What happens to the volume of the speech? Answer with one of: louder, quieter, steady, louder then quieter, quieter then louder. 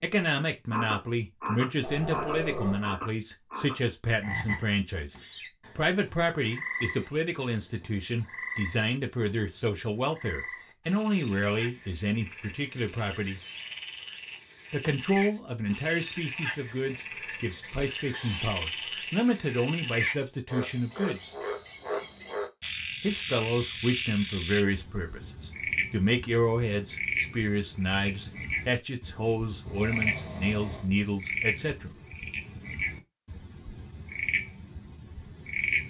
steady.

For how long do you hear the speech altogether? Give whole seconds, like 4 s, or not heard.
29 s.